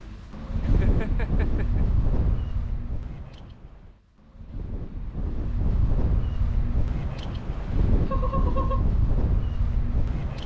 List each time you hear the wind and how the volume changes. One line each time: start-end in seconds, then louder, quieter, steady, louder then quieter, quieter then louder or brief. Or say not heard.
0.0-10.4 quieter then louder.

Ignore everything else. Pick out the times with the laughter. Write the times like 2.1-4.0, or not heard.
0.6-1.9, 8.1-8.8.